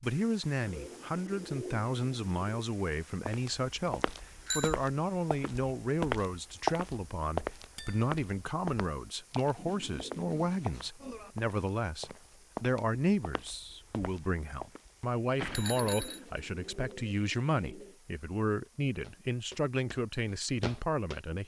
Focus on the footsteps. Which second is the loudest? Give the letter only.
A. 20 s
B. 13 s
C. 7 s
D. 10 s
C.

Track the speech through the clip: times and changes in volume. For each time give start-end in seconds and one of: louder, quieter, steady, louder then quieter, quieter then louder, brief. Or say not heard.
0.0-21.4 steady.